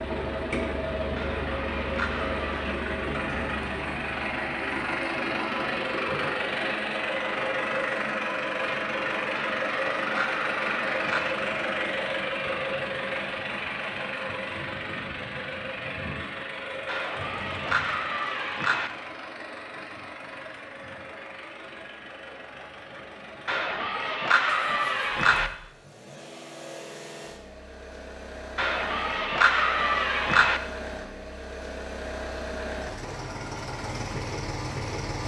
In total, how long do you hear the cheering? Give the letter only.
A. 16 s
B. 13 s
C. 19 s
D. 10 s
D.